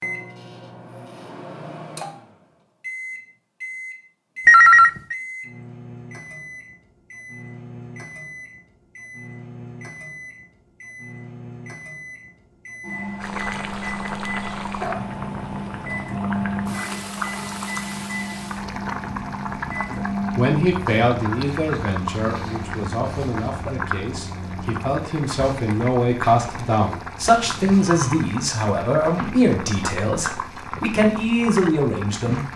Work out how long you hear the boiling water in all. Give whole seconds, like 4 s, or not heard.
19 s.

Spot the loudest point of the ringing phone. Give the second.
5 s.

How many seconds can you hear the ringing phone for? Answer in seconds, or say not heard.
2 s.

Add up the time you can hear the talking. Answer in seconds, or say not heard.
12 s.